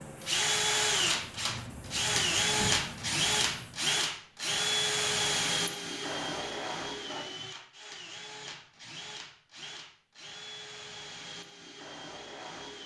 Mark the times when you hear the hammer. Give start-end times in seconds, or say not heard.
not heard.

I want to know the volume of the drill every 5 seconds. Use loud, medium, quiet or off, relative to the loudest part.
loud, medium, quiet.